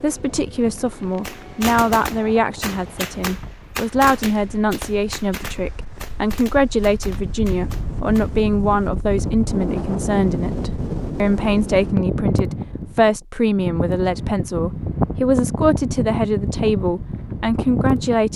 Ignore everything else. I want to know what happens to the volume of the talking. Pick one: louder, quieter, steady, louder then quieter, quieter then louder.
steady.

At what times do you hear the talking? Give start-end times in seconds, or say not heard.
0.0-18.3.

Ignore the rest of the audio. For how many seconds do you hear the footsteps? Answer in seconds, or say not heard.
not heard.